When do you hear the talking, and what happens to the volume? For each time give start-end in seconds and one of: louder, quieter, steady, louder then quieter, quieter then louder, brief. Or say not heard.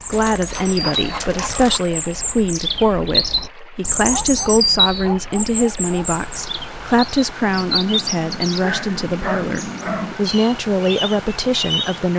0.1-12.1 steady.